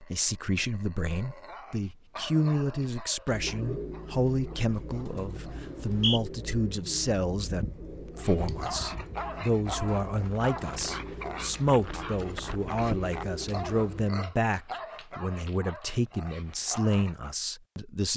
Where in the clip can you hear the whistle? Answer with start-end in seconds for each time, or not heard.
5.6-6.2.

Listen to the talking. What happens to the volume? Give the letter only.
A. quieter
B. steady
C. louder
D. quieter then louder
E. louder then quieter
B.